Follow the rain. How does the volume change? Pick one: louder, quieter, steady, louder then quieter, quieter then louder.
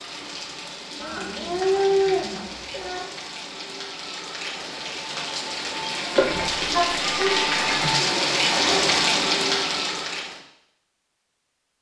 louder.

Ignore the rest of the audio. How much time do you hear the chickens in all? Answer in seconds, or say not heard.
4 s.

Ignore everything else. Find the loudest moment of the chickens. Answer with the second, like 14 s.
2 s.